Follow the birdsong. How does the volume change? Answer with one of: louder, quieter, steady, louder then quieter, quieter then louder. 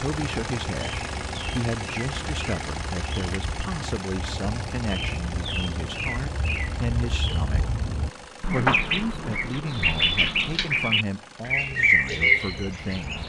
louder.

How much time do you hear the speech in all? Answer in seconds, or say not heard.
12 s.